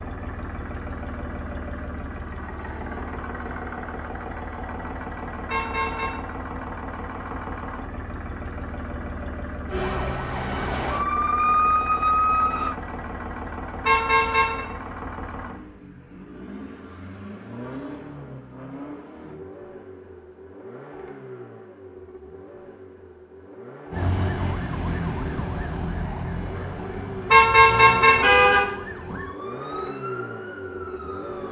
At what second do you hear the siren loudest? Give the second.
12 s.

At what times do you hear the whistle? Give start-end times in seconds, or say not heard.
not heard.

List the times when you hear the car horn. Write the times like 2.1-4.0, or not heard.
5.5-6.2, 13.8-14.7, 27.3-28.6.